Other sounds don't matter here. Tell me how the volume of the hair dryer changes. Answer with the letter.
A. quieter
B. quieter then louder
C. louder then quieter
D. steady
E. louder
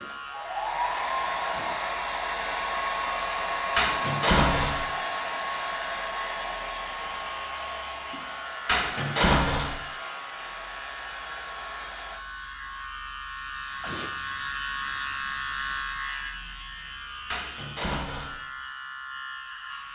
A.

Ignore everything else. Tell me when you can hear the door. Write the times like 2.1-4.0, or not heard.
3.8-4.8, 8.7-9.8, 17.3-18.4.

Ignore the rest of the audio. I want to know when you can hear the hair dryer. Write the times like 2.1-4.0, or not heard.
0.0-12.2.